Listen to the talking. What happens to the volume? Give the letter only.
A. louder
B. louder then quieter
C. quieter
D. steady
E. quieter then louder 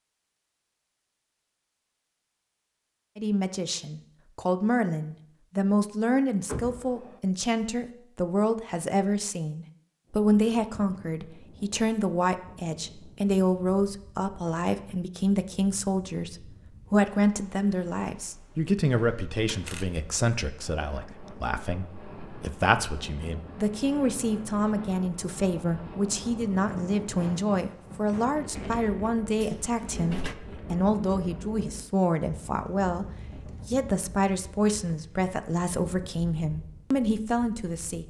D.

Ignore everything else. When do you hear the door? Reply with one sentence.
The door can be heard from 6.5 to 7.2 s, from 19.4 to 20.1 s and from 29.4 to 30.4 s.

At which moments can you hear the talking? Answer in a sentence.
You can hear the talking from 3.1 to 38.0 s.